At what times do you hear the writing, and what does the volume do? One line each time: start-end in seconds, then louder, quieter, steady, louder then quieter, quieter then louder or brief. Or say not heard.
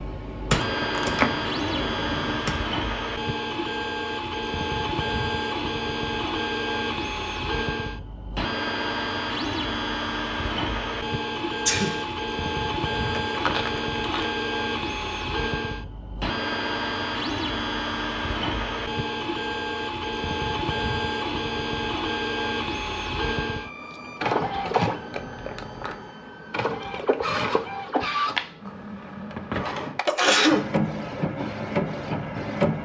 not heard.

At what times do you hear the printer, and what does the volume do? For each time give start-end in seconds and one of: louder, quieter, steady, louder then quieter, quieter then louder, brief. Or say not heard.
0.1-32.8 steady.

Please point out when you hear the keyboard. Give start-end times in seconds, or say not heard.
0.0-2.6.